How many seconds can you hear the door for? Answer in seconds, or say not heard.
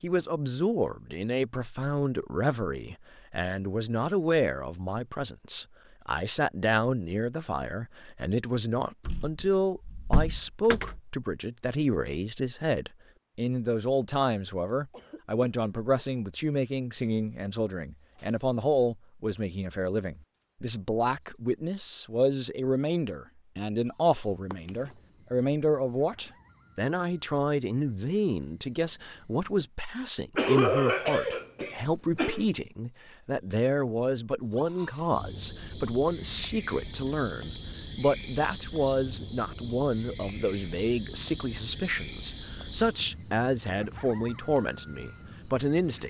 2 s.